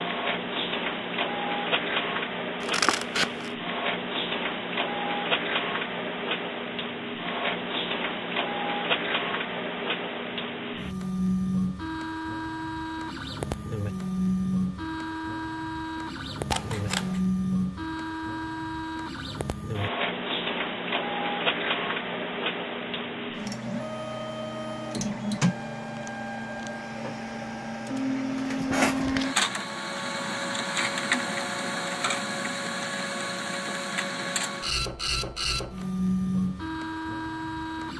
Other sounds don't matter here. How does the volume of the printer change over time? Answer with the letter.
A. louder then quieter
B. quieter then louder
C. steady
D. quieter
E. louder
C.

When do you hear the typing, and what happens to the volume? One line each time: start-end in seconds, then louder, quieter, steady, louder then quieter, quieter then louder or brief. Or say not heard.
not heard.